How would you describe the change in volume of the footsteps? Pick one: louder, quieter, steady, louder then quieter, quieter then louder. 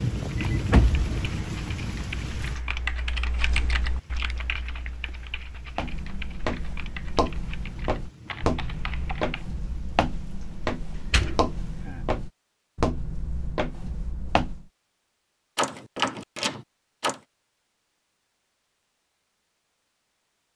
steady.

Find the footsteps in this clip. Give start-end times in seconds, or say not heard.
5.8-14.7.